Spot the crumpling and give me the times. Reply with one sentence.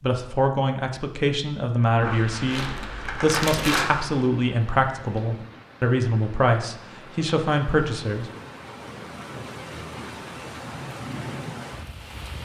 You can hear the crumpling from 2.5 to 3.9 s.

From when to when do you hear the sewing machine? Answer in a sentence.
You can't hear the sewing machine here.